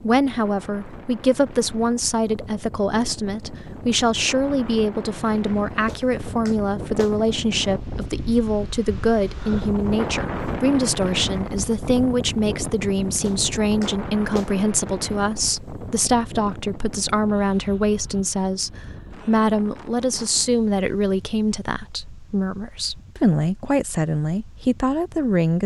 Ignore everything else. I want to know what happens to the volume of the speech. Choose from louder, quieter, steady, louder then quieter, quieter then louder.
steady.